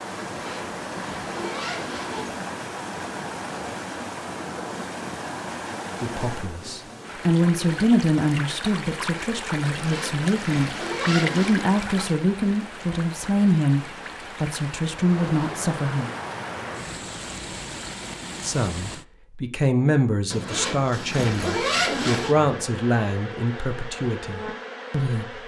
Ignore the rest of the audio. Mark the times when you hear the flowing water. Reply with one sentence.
The flowing water can be heard from 0.0 to 19.1 s.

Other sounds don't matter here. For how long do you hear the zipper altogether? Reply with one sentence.
The zipper can be heard for 6 seconds in total.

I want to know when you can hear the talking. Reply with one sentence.
You can hear the talking from 6.0 to 16.1 s and from 18.4 to 25.4 s.